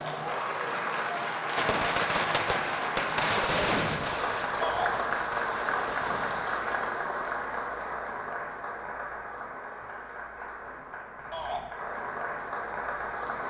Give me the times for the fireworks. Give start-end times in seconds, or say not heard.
1.6-6.8.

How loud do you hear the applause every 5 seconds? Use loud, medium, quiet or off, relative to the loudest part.
loud, loud, medium.